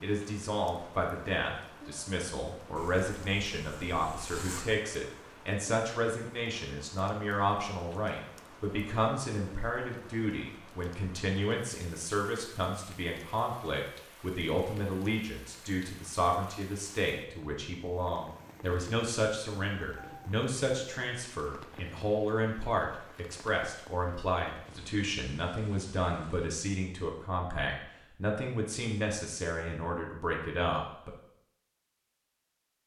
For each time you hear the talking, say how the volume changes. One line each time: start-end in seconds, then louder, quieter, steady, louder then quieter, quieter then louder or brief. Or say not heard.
0.0-31.1 steady.